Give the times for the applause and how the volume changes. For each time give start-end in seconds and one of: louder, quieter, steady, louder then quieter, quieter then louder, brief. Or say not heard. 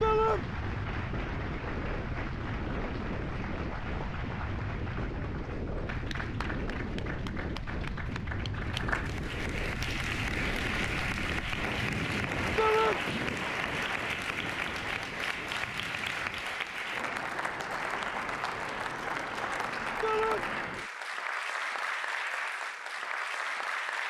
0.0-24.0 louder.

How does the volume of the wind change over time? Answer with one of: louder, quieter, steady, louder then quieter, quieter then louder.
quieter.